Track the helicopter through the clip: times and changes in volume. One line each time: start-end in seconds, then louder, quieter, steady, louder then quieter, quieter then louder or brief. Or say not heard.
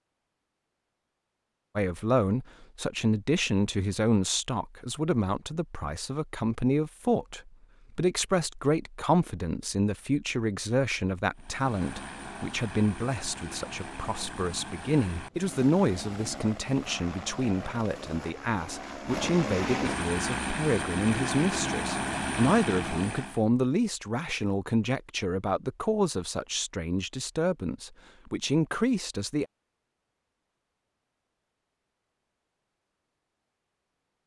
11.3-23.4 louder.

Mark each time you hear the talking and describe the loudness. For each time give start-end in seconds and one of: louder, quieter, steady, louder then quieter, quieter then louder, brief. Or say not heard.
1.8-29.4 steady.